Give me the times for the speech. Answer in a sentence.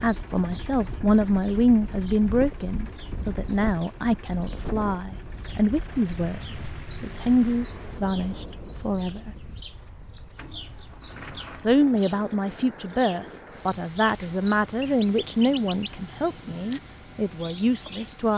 The speech can be heard from 0.0 to 9.3 s and from 11.6 to 18.3 s.